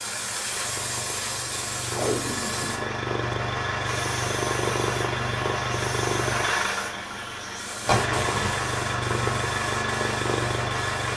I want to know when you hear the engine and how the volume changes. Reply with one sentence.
You can hear the engine from 0.0 to 11.1 s, getting louder.